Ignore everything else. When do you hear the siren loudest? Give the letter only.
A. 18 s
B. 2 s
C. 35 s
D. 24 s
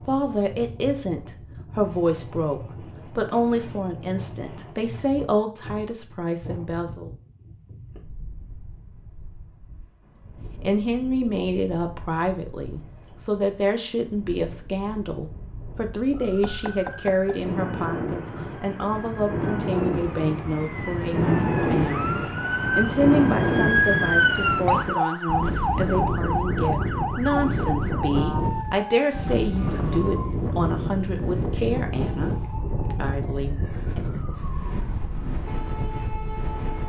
D.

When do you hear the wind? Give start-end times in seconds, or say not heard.
0.0-36.8.